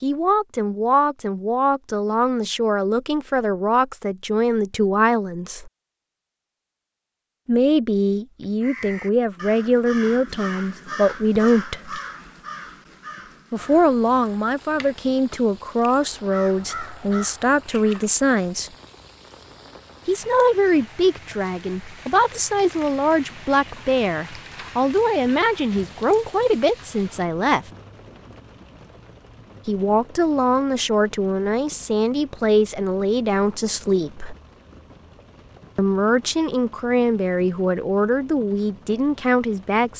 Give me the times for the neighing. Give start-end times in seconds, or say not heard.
not heard.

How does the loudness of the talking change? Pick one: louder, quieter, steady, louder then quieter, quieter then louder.
steady.